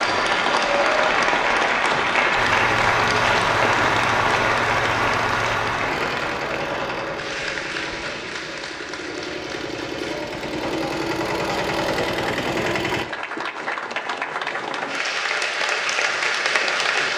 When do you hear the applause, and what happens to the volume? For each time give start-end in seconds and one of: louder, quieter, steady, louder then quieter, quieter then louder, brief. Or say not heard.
0.0-17.1 quieter then louder.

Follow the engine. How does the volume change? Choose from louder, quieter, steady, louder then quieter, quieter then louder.
quieter then louder.